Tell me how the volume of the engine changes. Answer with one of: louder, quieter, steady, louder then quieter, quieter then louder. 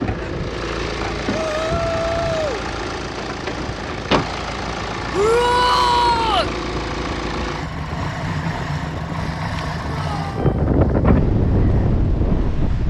quieter.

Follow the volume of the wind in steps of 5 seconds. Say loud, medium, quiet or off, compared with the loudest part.
quiet, quiet, loud.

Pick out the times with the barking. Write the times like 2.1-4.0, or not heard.
not heard.